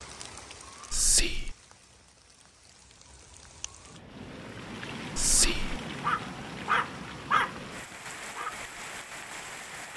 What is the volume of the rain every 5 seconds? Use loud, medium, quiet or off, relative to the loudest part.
medium, loud.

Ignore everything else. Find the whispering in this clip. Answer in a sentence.
The whispering can be heard from 0.9 to 1.6 s and from 5.2 to 5.8 s.